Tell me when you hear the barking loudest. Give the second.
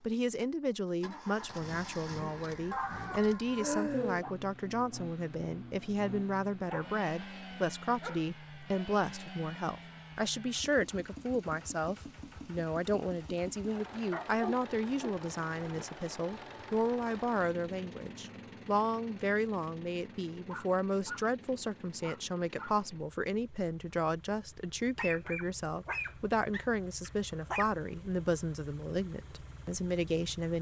4 s.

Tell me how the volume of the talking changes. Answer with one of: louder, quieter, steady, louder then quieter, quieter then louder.
steady.